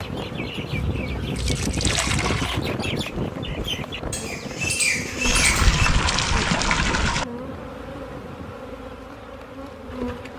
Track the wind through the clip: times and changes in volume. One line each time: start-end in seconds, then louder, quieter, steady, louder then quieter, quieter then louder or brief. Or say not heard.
0.0-8.6 quieter.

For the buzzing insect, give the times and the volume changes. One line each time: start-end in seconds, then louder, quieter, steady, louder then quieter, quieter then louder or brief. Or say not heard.
0.0-10.3 steady.